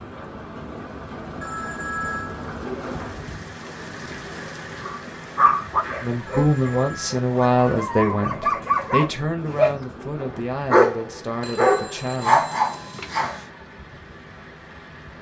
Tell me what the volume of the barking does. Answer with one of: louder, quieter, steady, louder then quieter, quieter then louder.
quieter then louder.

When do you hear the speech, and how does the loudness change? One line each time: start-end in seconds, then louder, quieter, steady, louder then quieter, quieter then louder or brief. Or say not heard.
6.0-12.6 quieter.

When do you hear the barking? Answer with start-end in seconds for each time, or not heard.
4.8-13.4.